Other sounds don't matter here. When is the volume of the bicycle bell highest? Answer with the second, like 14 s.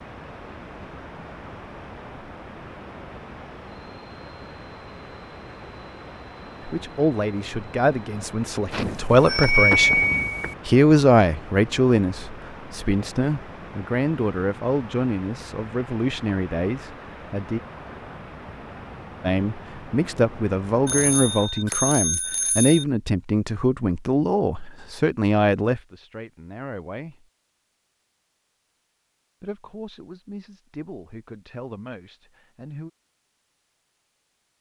10 s.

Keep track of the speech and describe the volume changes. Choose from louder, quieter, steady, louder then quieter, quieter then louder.
quieter.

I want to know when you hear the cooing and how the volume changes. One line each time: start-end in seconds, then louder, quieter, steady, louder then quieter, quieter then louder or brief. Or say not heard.
not heard.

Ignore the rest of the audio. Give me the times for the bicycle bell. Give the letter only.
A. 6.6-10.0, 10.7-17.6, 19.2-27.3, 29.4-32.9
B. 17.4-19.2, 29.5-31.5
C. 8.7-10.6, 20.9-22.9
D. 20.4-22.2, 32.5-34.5
C.